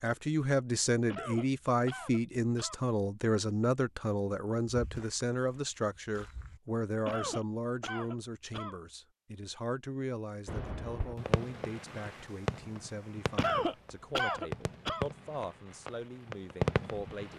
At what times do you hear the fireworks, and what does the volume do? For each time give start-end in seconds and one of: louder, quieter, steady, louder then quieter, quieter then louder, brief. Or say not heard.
10.4-17.3 quieter then louder.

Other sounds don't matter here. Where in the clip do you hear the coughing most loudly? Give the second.
14 s.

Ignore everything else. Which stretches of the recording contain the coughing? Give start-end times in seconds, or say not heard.
1.1-2.8, 7.0-8.8, 13.3-15.1.